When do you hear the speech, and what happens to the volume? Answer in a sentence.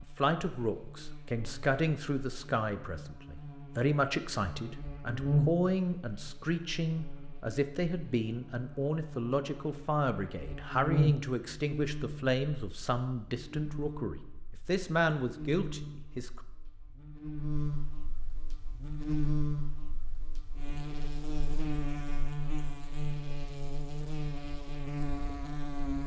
The speech can be heard from 0.0 to 16.4 s, at a steady volume.